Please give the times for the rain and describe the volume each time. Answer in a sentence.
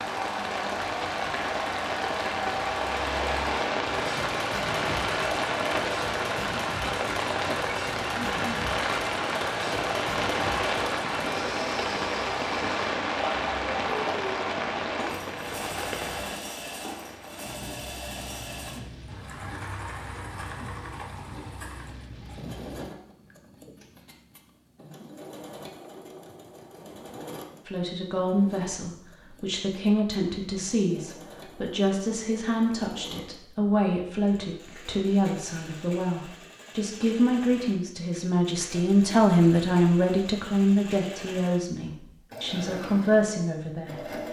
The rain can be heard from 0.0 to 22.9 s, getting quieter.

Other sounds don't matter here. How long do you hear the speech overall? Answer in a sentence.
The speech can be heard for 16 seconds in total.